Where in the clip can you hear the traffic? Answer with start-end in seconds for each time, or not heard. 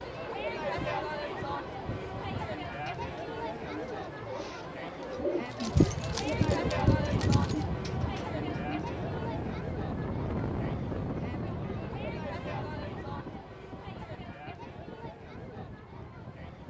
not heard.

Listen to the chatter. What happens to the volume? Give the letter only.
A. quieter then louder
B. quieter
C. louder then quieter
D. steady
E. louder
B.